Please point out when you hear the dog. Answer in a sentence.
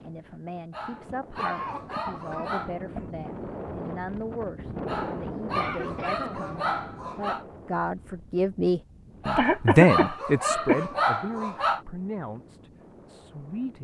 You can hear the dog from 0.7 to 2.8 s, from 4.8 to 7.5 s and from 9.2 to 11.8 s.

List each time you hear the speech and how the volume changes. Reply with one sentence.
You can hear the speech from 0.0 to 13.7 s, getting louder then quieter.